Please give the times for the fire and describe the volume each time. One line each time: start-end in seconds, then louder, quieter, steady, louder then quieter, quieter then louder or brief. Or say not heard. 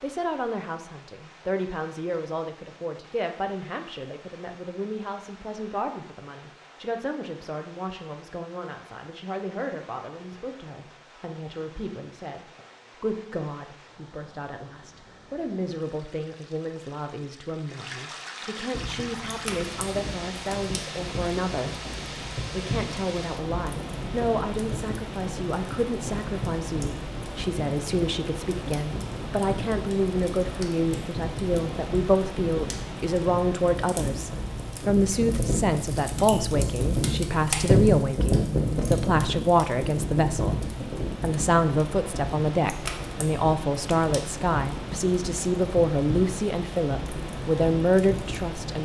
18.7-48.7 louder then quieter.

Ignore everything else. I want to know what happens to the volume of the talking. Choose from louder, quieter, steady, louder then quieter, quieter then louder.
louder.